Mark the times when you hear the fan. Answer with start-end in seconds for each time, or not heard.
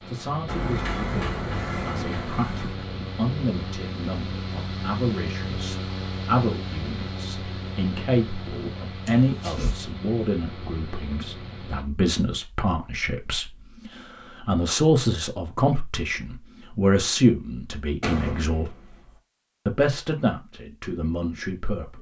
0.0-11.8.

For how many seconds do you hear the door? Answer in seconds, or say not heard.
4 s.